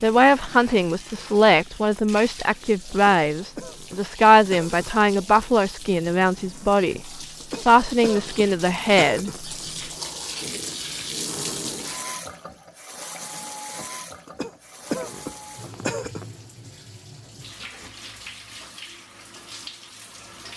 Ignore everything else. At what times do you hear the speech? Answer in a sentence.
You can hear the speech from 0.0 to 9.4 s.